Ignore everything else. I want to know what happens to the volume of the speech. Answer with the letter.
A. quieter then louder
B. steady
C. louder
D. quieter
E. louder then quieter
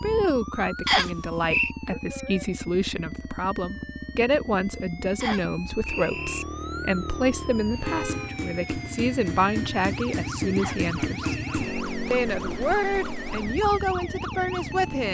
B.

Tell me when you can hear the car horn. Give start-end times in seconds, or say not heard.
7.8-8.4.